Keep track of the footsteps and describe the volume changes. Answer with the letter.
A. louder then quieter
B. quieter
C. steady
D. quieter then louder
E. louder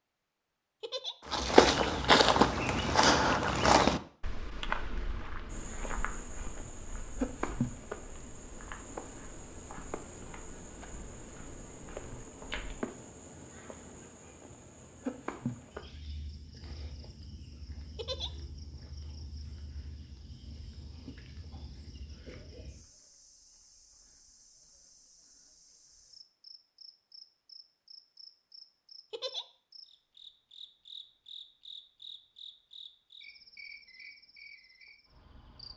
B.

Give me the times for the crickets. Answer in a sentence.
The crickets can be heard from 5.5 to 35.7 s.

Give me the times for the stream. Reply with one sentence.
The stream can't be heard in this clip.